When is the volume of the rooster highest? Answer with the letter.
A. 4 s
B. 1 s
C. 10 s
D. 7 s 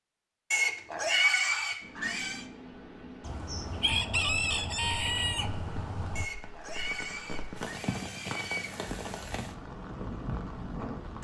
A.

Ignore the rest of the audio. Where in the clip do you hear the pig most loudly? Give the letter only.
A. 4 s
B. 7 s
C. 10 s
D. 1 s
D.